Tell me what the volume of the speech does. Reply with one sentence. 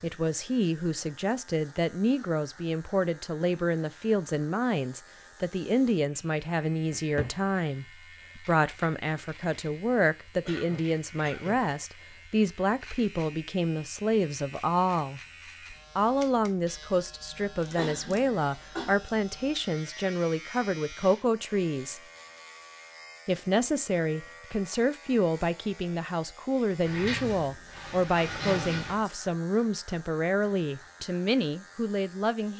The volume of the speech stays about the same.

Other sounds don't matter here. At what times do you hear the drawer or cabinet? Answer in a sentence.
The drawer or cabinet can be heard from 6.9 to 7.3 s and from 26.8 to 29.1 s.